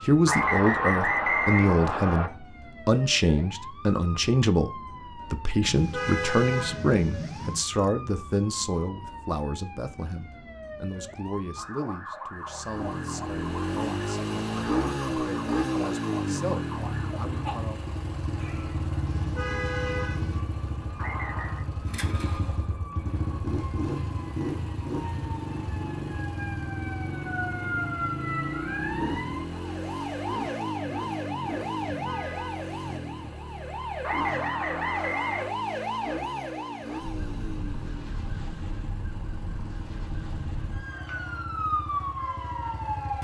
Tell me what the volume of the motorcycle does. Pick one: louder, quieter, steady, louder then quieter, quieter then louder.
quieter.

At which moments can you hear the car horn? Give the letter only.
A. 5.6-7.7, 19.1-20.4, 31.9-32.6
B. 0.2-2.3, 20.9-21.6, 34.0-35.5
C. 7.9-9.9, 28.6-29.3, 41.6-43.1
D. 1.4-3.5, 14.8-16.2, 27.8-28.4
A.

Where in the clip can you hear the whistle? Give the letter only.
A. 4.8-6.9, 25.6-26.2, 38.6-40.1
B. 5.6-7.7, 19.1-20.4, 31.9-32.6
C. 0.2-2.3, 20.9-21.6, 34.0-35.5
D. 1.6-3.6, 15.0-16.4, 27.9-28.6
C.